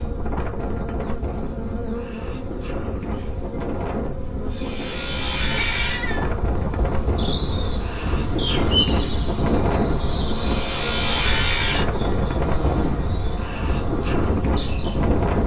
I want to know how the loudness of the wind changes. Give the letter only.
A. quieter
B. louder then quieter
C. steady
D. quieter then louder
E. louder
E.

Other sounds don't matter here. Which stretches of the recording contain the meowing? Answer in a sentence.
You can hear the meowing from 4.8 to 6.3 s.